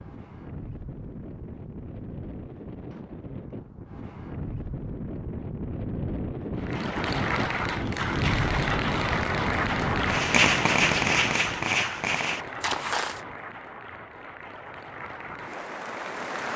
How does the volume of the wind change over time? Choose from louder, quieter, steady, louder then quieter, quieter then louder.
louder.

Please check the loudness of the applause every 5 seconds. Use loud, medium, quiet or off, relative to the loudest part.
off, loud, medium, medium.